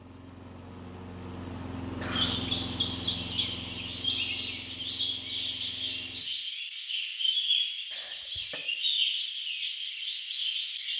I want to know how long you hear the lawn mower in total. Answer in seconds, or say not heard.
6 s.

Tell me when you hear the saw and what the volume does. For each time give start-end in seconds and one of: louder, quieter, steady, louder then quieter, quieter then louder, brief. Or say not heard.
not heard.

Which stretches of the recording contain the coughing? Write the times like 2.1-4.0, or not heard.
1.8-2.4, 7.9-8.6.